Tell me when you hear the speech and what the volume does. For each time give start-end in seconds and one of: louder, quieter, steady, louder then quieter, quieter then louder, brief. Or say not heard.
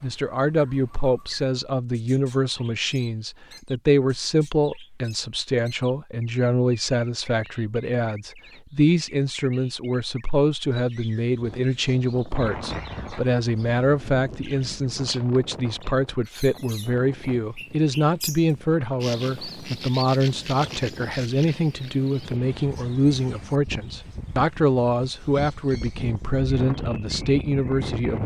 0.0-28.2 steady.